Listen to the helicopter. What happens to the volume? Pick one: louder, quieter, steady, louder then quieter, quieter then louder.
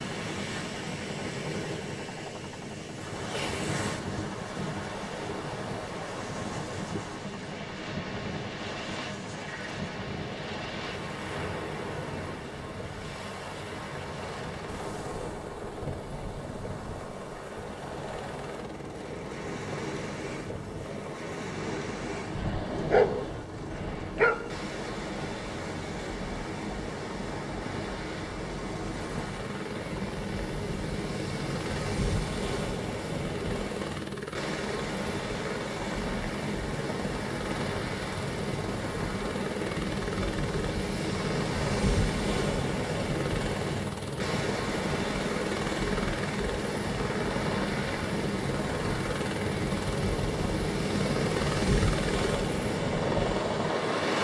louder.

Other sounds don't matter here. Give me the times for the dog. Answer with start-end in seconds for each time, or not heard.
22.4-24.6.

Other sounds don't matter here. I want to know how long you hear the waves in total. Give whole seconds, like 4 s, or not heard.
54 s.